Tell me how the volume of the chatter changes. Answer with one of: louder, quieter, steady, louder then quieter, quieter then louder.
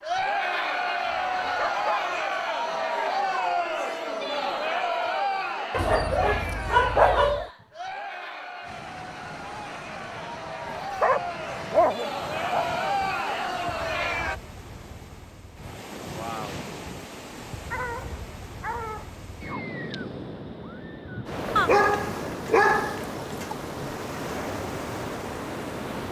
quieter then louder.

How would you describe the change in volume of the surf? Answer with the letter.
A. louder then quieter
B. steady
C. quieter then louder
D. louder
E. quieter
D.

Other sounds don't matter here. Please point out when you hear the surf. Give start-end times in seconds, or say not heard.
8.6-26.0.